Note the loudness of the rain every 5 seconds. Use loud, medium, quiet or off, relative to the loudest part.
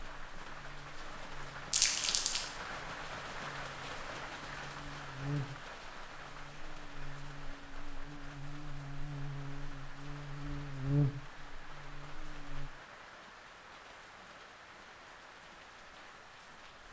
loud, medium, medium, medium.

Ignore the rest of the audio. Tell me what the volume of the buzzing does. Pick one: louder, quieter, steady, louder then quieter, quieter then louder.
louder.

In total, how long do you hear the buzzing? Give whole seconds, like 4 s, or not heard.
13 s.